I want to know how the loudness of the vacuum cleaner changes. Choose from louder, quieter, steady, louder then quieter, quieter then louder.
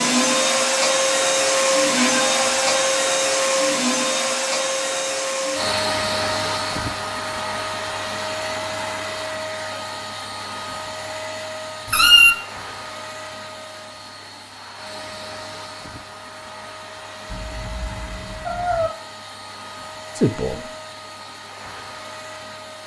quieter.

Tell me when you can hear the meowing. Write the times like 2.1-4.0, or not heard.
1.9-3.0, 11.8-12.3, 17.2-18.9.